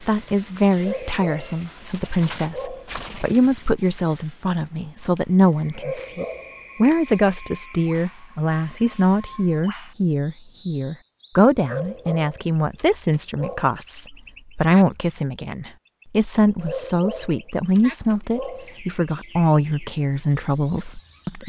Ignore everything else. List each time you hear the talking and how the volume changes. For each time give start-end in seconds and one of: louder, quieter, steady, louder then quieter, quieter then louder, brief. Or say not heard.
0.1-21.4 steady.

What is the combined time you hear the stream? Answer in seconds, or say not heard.
not heard.